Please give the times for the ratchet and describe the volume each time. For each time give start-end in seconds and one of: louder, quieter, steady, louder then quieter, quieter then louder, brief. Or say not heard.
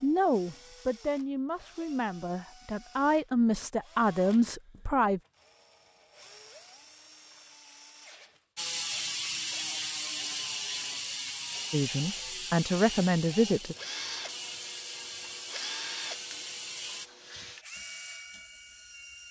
8.6-17.1 quieter.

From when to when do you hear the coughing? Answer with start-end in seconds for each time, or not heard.
not heard.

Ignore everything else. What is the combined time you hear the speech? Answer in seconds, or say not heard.
7 s.